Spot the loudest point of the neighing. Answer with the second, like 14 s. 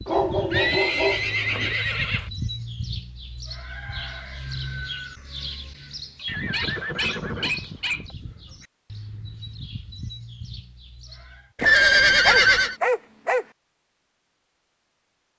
12 s.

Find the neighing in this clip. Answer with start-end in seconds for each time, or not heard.
0.5-2.3, 6.2-8.2, 11.6-12.8.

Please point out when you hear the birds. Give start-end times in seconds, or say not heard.
0.0-11.5.